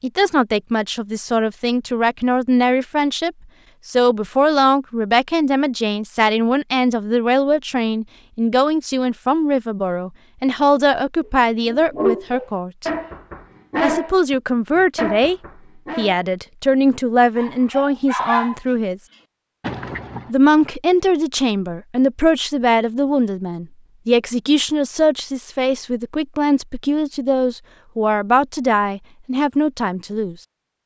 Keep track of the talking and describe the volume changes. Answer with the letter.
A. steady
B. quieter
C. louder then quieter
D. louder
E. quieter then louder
A.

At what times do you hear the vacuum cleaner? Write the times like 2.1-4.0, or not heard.
not heard.